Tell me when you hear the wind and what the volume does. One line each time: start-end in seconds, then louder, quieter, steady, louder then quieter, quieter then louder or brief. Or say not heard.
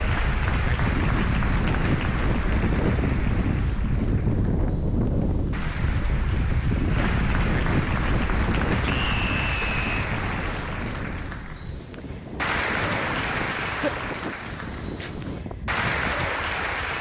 0.0-16.9 quieter.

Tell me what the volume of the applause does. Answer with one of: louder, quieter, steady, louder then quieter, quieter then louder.
quieter then louder.